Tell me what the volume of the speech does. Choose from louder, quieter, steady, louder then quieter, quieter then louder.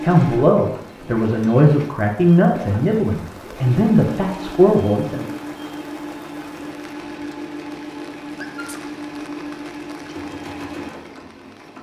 steady.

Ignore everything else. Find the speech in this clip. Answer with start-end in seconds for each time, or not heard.
0.0-5.3.